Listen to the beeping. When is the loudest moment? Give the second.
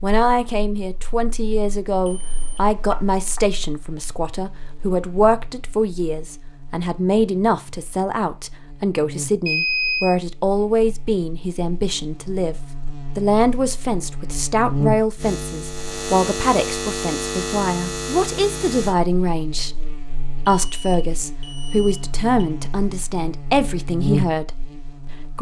10 s.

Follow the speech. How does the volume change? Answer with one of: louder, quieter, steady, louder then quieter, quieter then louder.
steady.